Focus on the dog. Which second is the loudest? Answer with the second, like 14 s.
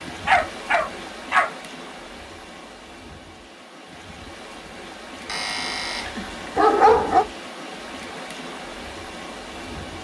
7 s.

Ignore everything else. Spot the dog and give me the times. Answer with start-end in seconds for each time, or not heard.
0.2-1.5, 5.2-7.2.